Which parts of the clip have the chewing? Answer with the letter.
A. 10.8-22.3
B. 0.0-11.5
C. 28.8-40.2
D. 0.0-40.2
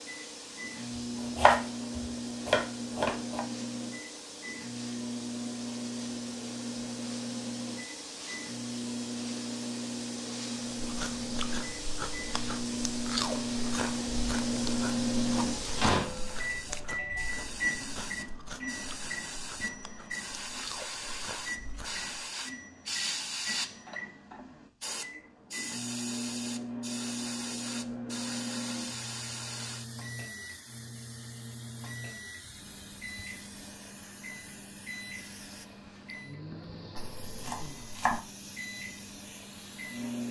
A.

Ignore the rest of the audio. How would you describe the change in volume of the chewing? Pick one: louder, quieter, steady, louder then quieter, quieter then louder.
quieter.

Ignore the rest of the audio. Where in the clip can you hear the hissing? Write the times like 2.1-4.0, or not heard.
0.0-40.2.